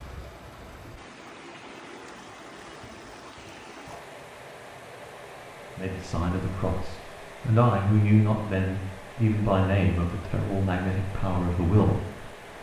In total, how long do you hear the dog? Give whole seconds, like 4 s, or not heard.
not heard.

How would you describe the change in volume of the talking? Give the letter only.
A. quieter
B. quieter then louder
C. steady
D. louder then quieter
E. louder
D.